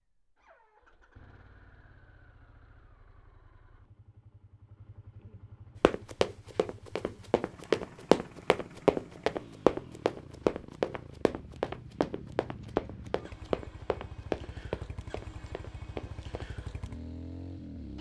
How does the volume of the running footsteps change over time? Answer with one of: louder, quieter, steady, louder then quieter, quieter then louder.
quieter.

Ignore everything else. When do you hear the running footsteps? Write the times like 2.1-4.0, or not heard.
5.8-16.4.